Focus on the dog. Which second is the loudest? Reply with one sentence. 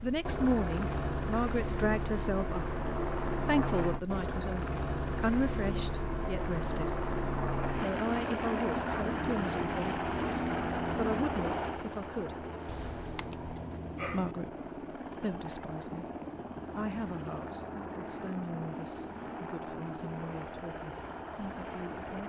The volume of the dog peaks at 14 seconds.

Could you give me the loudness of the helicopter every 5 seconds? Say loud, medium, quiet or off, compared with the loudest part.
loud, loud, loud, medium, medium.